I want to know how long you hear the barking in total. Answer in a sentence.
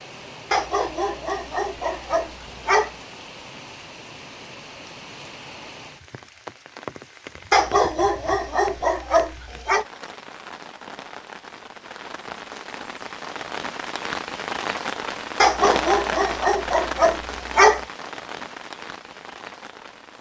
You can hear the barking for 7 seconds altogether.